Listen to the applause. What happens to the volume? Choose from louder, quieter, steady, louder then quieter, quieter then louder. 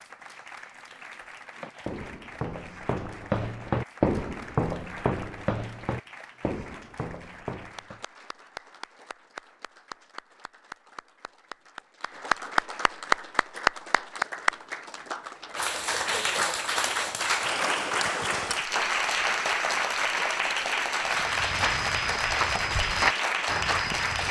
louder.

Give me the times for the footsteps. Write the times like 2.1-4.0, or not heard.
1.6-8.0, 21.1-24.2.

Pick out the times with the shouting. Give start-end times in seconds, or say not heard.
not heard.